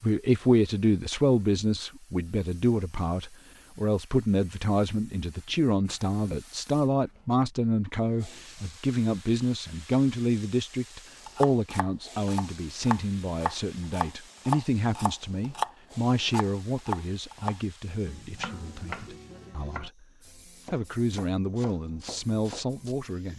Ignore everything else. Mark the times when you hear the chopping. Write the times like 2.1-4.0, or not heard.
11.2-22.9.